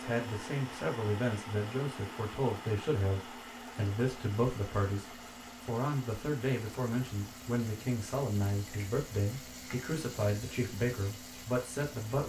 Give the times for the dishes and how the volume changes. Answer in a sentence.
The dishes can't be heard in this clip.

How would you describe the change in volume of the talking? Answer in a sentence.
The volume of the talking stays about the same.